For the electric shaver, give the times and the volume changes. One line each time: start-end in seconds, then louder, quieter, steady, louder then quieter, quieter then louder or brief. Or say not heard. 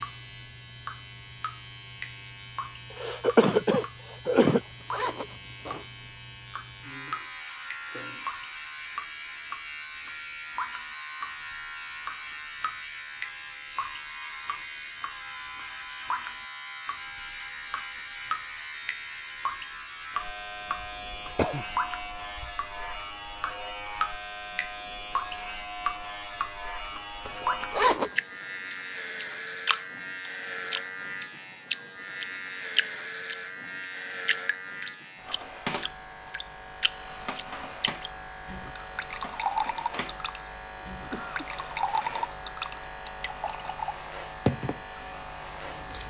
0.0-46.0 steady.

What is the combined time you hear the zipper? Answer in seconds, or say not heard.
2 s.